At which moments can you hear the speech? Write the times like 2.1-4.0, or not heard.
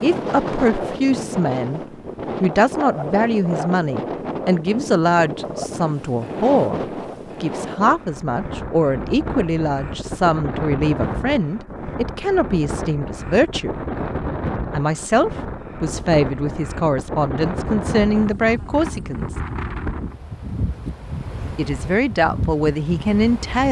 0.0-1.8, 2.4-6.8, 7.4-13.8, 14.7-19.4, 21.6-23.6.